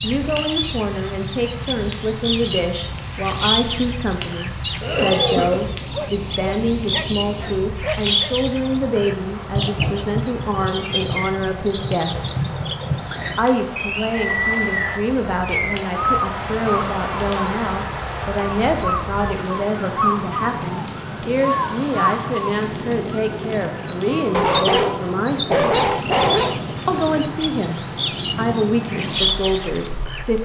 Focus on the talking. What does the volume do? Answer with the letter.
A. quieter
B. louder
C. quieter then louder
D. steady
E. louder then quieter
D.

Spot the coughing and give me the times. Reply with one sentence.
The coughing can be heard from 4.8 to 5.6 s.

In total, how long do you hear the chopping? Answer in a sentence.
The chopping can't be heard in this clip.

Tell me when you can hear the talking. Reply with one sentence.
You can hear the talking from 0.0 to 12.4 s, from 13.3 to 25.8 s and from 26.9 to 30.3 s.